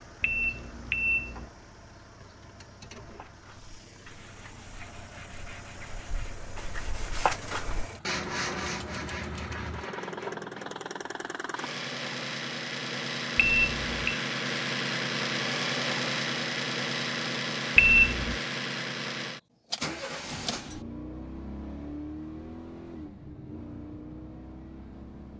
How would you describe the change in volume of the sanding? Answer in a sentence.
The loudness of the sanding goes up, then down.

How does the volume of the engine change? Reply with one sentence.
The loudness of the engine goes up, then down.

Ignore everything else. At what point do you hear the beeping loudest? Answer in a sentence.
The loudest moment of the beeping is at 18 seconds.